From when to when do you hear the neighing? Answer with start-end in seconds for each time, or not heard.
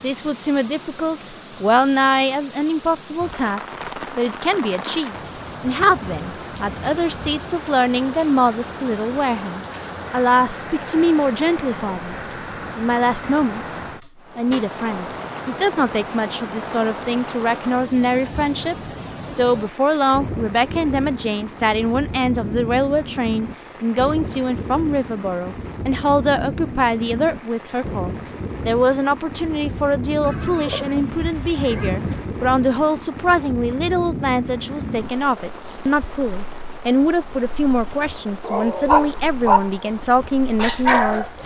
30.2-32.2.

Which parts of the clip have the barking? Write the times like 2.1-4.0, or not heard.
38.0-41.4.